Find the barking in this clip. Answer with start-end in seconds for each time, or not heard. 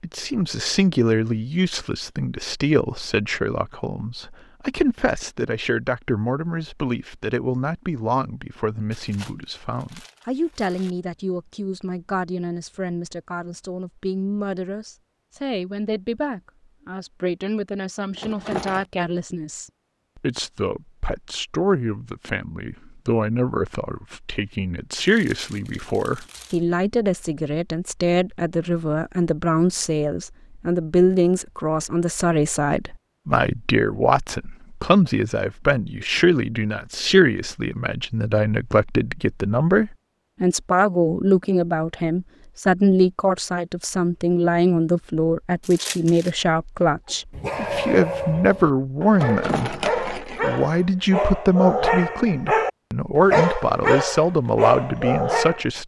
47.0-55.6.